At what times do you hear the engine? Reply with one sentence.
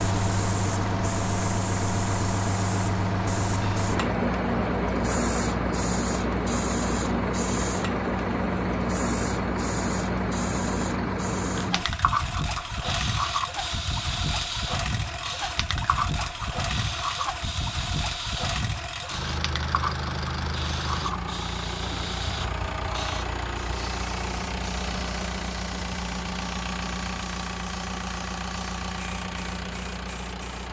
The engine can be heard from 0.0 to 30.6 s.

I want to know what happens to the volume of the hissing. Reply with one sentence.
The loudness of the hissing goes down.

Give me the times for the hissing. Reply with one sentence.
The hissing can be heard from 0.0 to 30.6 s.